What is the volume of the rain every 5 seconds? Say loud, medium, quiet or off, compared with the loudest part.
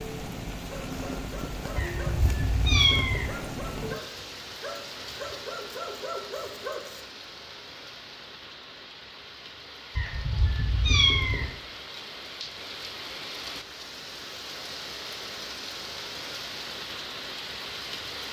loud, medium, loud, loud.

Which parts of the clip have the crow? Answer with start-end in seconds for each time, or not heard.
not heard.